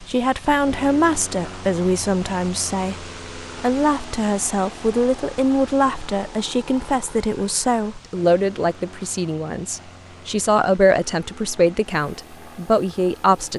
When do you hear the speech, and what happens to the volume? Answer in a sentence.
You can hear the speech from 0.0 to 13.5 s, at a steady volume.